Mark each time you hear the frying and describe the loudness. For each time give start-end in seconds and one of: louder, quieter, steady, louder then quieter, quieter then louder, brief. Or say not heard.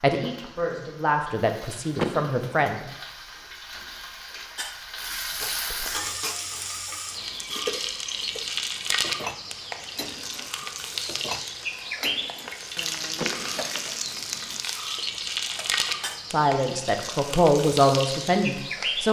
0.0-19.0 louder.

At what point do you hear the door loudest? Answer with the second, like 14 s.
2 s.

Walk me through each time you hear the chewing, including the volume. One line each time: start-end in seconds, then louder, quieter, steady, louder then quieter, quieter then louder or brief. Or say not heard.
not heard.